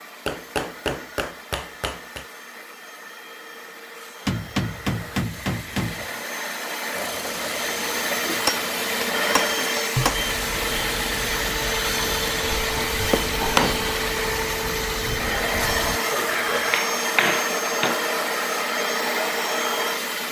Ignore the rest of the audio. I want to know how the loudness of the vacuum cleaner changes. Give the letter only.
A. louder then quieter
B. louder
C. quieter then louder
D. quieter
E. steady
B.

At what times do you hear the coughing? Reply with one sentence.
The coughing can be heard from 15.9 to 16.6 s.